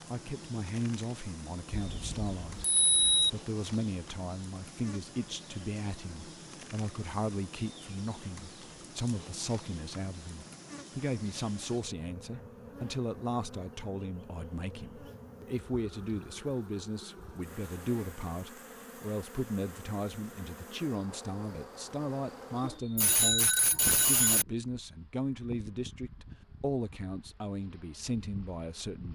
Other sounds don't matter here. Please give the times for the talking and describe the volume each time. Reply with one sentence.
The talking can be heard from 0.1 to 29.1 s, at a steady volume.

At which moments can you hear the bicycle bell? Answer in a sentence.
The bicycle bell can be heard from 1.7 to 3.3 s and from 22.6 to 24.4 s.